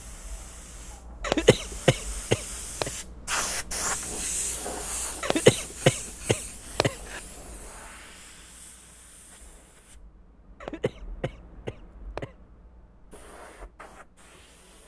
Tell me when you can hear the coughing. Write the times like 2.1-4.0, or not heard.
1.2-2.9, 5.2-7.2, 10.6-12.3.